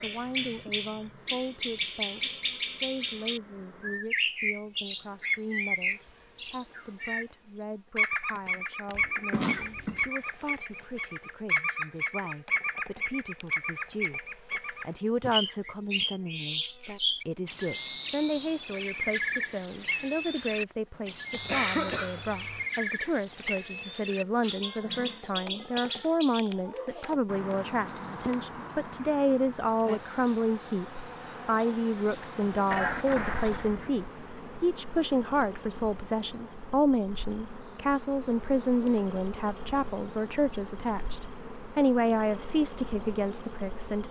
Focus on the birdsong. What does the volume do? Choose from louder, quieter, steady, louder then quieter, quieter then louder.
quieter.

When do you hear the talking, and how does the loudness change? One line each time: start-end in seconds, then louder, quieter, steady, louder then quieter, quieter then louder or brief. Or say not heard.
0.0-44.0 louder.